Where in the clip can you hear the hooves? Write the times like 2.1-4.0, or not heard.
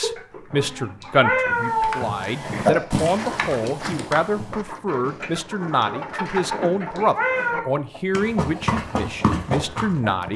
1.4-4.6, 8.1-10.3.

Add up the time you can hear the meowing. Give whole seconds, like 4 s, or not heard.
2 s.